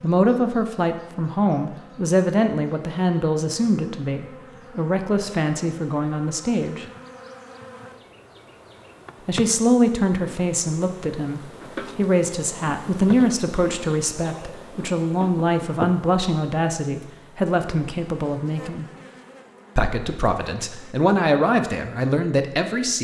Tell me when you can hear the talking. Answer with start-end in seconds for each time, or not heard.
0.0-6.8, 9.2-18.9, 19.8-23.0.